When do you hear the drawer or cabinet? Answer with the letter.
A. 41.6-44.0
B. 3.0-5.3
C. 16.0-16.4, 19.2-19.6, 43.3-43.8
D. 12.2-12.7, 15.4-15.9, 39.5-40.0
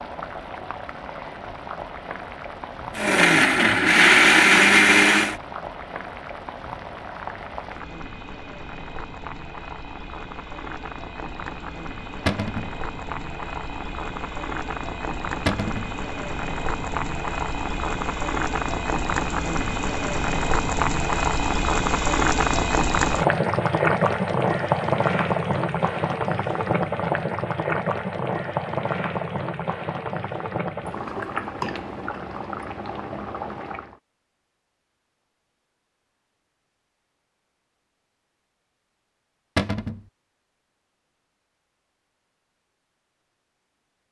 D.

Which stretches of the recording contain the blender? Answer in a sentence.
You can hear the blender from 3.0 to 5.3 s.